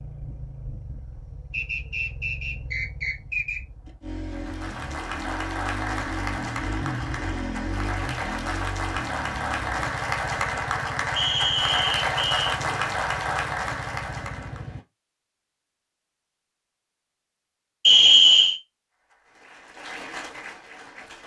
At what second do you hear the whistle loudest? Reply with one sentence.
The loudest moment of the whistle is at 18 seconds.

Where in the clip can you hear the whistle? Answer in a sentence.
You can hear the whistle from 1.5 to 3.6 s, from 11.2 to 12.5 s and from 17.9 to 18.6 s.